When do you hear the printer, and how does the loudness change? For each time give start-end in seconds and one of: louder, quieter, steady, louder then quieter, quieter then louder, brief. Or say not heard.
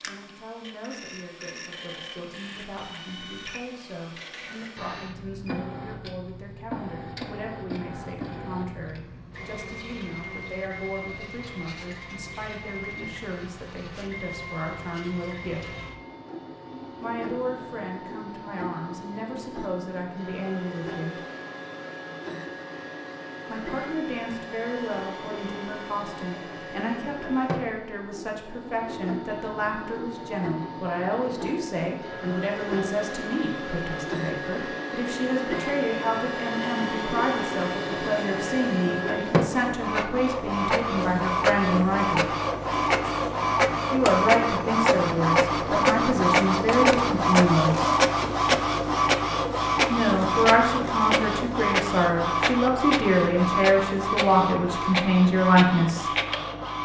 0.0-56.8 louder.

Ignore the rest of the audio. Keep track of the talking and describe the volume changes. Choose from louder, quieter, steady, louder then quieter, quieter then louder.
louder.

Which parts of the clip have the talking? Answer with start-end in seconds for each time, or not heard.
0.0-15.7, 17.0-21.2, 23.4-42.3, 43.9-47.9, 49.9-56.1.